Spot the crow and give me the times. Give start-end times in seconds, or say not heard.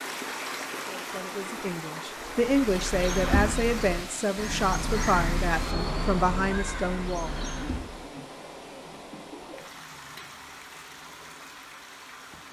2.4-8.1.